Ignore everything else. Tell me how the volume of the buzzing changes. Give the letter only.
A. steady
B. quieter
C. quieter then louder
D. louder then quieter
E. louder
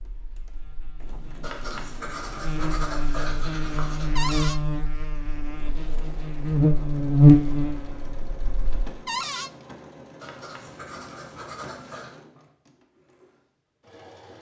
E.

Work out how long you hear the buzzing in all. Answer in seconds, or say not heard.
9 s.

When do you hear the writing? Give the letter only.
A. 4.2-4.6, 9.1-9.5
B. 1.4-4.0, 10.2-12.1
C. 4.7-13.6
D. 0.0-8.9
B.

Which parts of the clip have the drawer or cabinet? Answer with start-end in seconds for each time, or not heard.
4.2-4.6, 9.1-9.5.